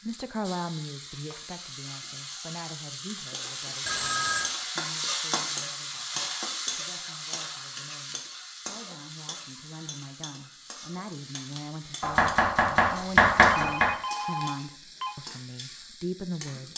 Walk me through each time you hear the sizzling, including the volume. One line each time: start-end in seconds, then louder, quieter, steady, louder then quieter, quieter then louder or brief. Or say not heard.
0.0-16.7 louder then quieter.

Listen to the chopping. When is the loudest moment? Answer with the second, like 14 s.
13 s.